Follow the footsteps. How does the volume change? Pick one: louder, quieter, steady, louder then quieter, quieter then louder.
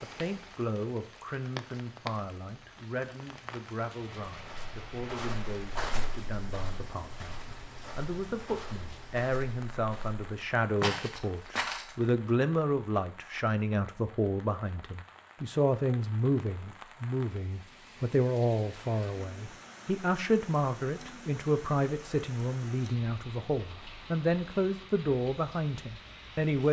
quieter then louder.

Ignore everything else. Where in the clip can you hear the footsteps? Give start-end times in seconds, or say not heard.
4.3-12.3.